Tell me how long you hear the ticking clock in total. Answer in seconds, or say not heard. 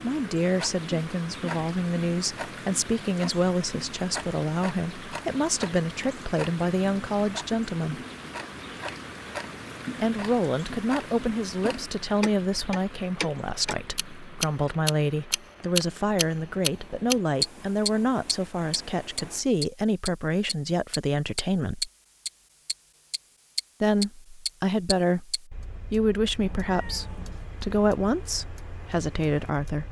30 s.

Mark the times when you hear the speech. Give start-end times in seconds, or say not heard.
0.0-8.0, 9.9-21.9, 23.8-29.8.